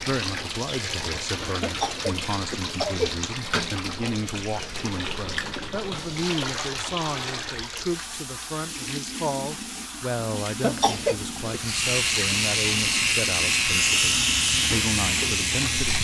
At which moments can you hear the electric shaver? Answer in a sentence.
You can hear the electric shaver from 11.5 to 15.9 s.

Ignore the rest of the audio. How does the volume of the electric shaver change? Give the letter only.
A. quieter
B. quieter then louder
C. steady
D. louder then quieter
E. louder
C.